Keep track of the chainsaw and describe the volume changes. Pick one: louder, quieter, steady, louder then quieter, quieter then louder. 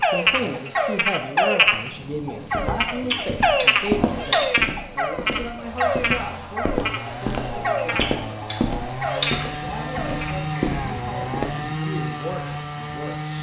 louder.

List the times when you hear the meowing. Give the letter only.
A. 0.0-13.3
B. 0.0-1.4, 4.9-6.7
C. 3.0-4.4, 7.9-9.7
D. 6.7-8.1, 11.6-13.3
C.